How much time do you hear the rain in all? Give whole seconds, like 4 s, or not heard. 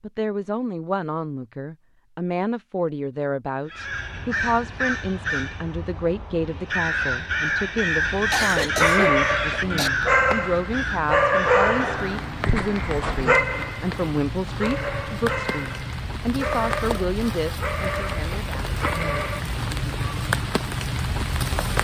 14 s.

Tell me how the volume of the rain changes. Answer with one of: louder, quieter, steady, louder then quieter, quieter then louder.
louder.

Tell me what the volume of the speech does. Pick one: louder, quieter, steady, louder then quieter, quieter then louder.
steady.